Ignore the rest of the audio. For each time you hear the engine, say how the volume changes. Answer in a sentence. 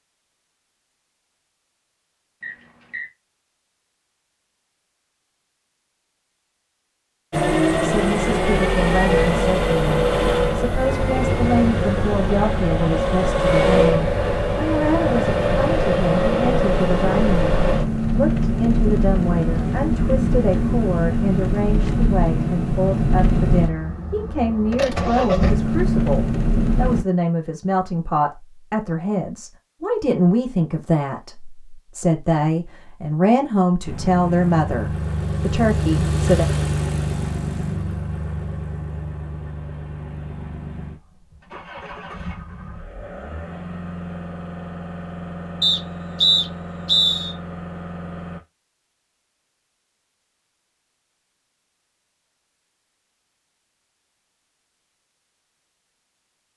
You can hear the engine from 7.3 to 27.1 s, at a steady volume; and from 33.8 to 48.4 s, getting quieter.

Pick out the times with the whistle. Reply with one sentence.
The whistle can be heard from 2.4 to 3.0 s and from 45.6 to 47.4 s.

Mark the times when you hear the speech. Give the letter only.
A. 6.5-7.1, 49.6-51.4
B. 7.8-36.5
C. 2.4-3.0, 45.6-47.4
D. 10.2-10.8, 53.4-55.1
B.